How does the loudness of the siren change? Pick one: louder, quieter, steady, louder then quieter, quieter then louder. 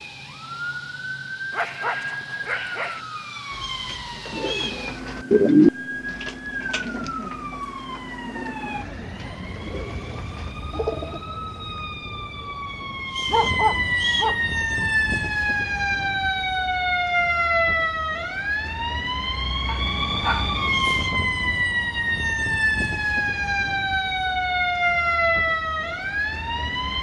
louder.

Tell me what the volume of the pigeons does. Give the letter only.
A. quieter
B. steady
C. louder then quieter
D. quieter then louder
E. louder
C.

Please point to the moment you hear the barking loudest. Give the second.
14 s.